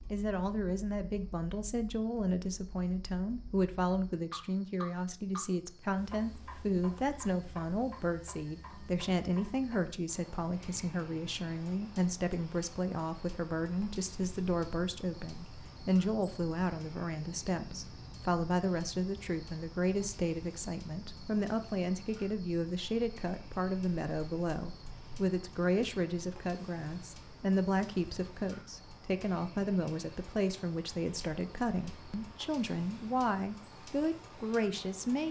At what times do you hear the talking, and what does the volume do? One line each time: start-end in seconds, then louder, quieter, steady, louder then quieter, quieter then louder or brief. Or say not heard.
0.1-35.2 steady.